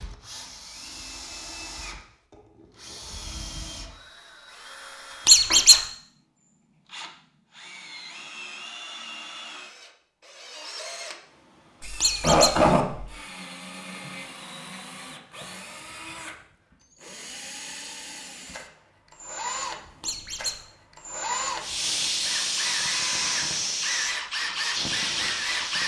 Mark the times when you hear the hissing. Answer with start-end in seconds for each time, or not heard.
21.6-25.8.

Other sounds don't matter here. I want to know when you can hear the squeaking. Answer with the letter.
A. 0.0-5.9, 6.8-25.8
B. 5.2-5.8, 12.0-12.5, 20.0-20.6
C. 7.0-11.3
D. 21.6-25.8
B.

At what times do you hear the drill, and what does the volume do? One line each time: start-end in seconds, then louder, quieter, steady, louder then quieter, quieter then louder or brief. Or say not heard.
0.0-5.9 steady
6.8-25.8 louder.